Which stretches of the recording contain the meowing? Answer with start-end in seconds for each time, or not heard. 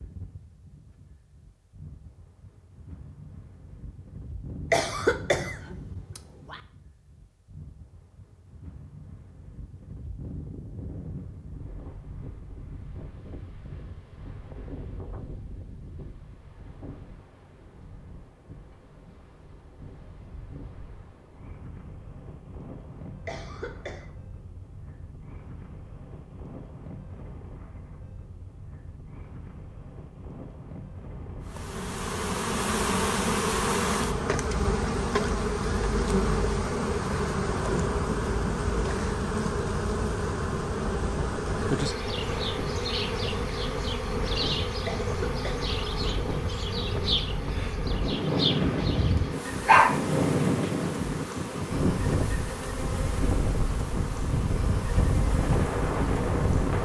not heard.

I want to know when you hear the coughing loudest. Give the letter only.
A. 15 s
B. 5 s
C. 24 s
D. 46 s
B.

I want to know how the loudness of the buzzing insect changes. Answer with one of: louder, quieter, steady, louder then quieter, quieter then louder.
quieter.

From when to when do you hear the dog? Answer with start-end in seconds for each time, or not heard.
48.8-50.0.